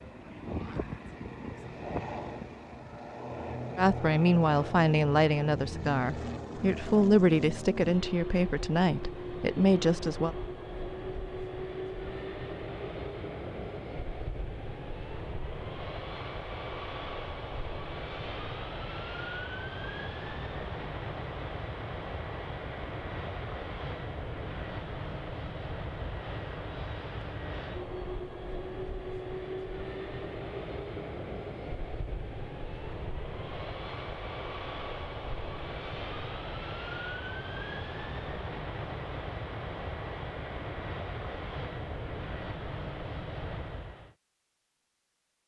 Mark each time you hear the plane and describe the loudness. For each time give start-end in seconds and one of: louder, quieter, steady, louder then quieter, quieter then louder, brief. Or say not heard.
0.0-44.1 steady.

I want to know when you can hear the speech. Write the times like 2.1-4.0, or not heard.
3.8-10.3.